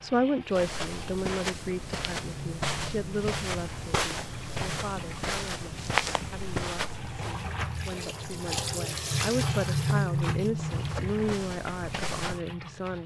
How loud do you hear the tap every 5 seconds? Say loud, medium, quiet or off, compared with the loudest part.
medium, loud, loud.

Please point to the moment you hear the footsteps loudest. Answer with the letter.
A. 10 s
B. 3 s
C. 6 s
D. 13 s
C.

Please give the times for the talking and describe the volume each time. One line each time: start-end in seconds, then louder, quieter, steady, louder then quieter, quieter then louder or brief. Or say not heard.
0.0-13.0 quieter then louder.